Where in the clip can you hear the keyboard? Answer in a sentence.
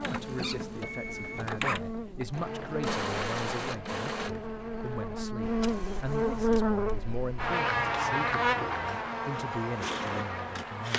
The keyboard can't be heard in this clip.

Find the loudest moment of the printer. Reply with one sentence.
The loudest moment of the printer is at 3 seconds.